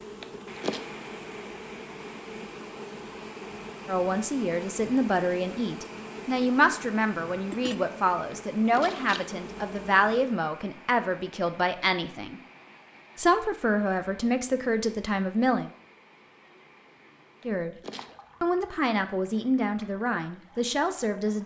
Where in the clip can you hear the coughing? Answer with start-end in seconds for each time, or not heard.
0.2-0.8, 8.3-9.2, 17.4-18.1.